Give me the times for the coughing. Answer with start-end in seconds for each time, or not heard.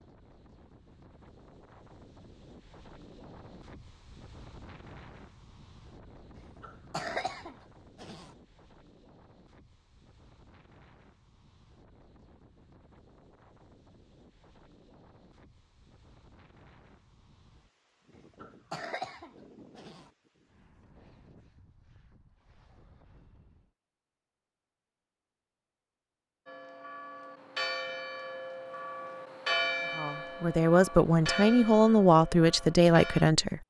6.3-8.3, 18.1-20.1.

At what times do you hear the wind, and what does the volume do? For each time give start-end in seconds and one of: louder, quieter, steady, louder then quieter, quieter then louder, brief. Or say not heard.
0.0-23.8 quieter.